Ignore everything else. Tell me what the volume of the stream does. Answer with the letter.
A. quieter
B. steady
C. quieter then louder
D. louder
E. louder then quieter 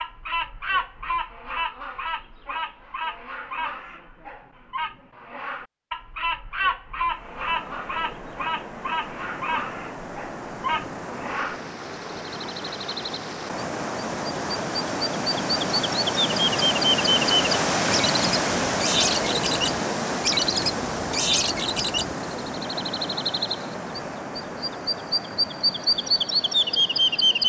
E.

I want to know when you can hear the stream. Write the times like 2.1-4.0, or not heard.
7.0-27.4.